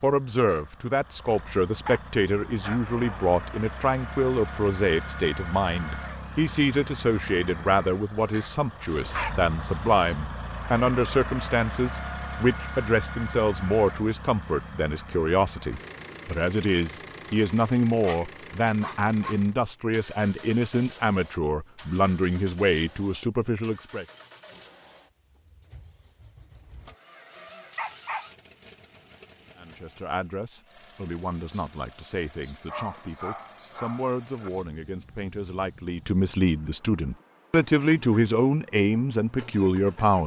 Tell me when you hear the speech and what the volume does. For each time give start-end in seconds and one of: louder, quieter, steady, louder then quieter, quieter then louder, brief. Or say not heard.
0.0-24.1 steady
29.6-40.2 louder.